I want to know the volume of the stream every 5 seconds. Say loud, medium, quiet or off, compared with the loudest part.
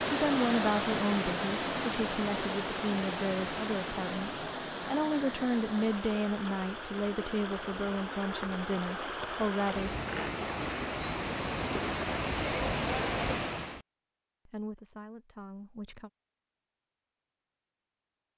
loud, medium, loud, off.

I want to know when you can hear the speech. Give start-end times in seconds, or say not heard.
0.1-9.9, 14.4-16.1.